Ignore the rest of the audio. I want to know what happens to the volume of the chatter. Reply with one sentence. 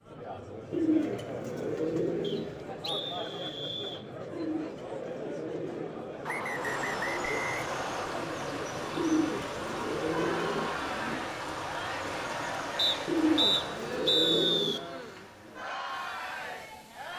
The loudness of the chatter stays about the same.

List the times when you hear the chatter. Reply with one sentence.
The chatter can be heard from 0.0 to 17.1 s.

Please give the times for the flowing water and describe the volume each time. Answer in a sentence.
You can hear the flowing water from 6.5 to 17.1 s, getting quieter.